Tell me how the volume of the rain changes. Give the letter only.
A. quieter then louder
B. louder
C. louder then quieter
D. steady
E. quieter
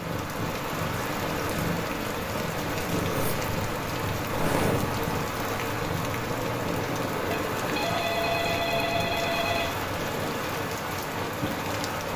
D.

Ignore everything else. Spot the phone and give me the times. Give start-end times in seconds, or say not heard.
7.3-9.8.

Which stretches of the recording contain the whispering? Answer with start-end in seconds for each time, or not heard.
not heard.